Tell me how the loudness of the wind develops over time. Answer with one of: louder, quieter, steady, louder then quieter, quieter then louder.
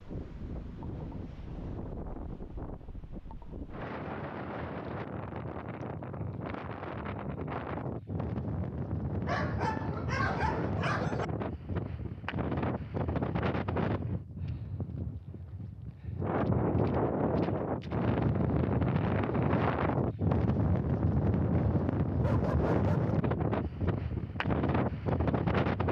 louder.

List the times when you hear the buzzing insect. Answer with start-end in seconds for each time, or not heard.
not heard.